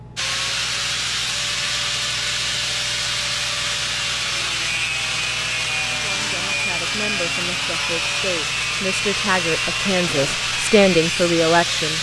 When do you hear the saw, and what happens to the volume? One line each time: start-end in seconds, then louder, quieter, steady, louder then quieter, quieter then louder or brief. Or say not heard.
0.1-11.9 steady.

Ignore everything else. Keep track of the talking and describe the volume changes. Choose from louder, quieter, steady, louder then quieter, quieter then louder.
louder.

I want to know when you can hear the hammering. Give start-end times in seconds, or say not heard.
not heard.